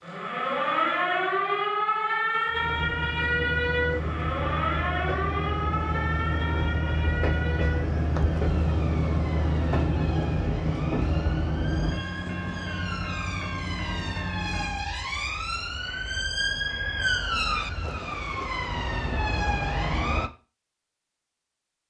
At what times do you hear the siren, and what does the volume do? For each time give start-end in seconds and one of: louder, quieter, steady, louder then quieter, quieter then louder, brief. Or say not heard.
0.0-20.3 quieter then louder.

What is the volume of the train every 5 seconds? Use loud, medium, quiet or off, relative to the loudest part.
medium, loud, loud, off, off.